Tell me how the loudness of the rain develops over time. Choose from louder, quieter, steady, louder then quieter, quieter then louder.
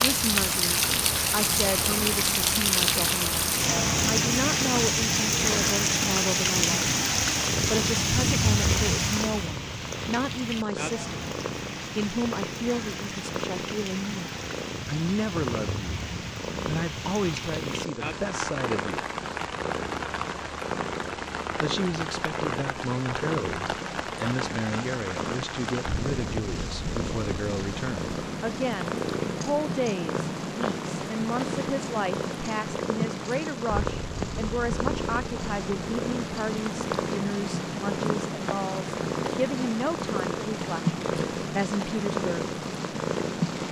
quieter.